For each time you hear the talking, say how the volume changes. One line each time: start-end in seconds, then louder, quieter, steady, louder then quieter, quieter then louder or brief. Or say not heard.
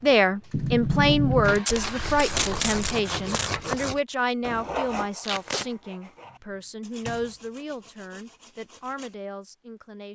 0.0-10.1 quieter.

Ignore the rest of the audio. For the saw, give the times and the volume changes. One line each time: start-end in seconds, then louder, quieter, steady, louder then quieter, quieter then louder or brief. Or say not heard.
1.6-9.2 quieter.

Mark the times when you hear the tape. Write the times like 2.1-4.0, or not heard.
1.6-3.5, 5.2-5.7.